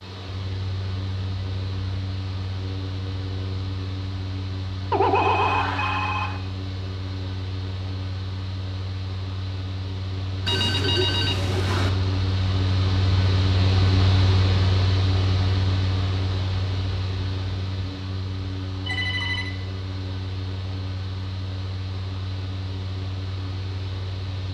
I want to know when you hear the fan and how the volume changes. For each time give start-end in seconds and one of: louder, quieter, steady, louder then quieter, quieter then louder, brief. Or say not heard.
0.0-24.4 louder then quieter.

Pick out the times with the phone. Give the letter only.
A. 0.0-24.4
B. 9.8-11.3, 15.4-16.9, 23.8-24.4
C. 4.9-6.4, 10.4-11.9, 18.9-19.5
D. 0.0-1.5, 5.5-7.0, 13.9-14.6
C.